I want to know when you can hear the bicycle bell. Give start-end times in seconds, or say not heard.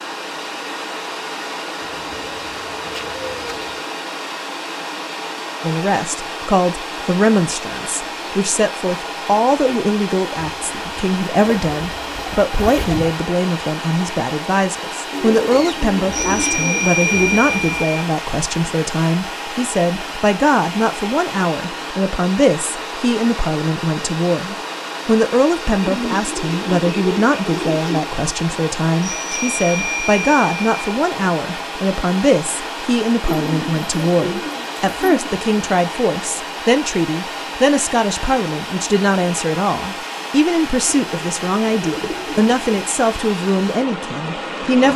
16.1-18.0, 29.0-30.7.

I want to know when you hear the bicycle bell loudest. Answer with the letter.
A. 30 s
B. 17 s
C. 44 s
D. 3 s
B.